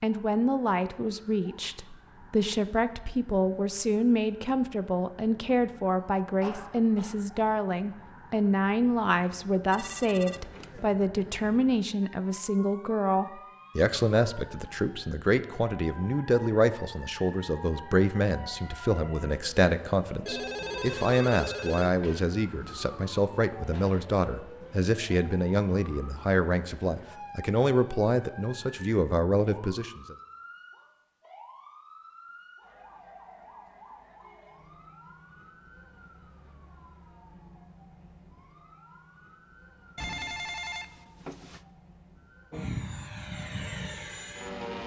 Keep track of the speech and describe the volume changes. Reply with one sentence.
The loudness of the speech stays about the same.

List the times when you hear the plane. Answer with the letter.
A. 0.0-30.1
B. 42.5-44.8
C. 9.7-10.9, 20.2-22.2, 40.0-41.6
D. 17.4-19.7
B.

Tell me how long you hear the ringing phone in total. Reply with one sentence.
You can hear the ringing phone for 5 seconds altogether.